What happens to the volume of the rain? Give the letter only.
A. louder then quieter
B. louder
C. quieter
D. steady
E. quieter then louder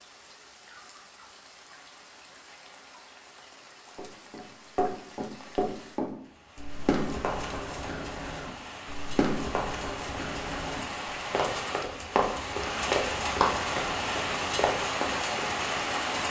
B.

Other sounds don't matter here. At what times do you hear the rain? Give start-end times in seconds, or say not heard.
0.0-16.2.